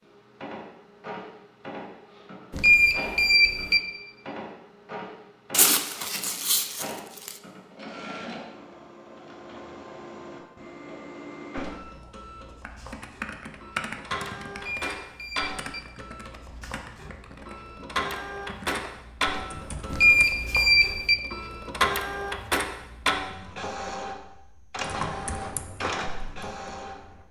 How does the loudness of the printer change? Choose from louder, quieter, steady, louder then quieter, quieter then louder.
louder.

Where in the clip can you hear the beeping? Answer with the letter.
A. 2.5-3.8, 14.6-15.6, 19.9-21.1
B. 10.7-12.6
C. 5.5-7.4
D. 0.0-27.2
A.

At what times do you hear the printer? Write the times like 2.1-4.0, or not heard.
0.0-27.2.